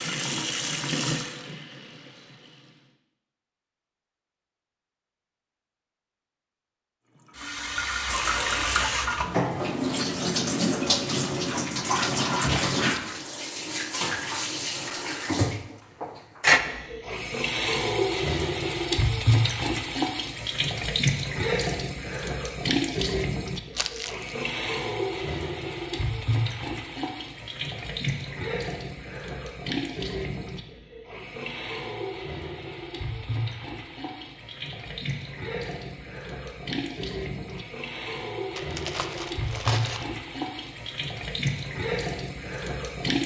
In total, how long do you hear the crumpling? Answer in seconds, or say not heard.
3 s.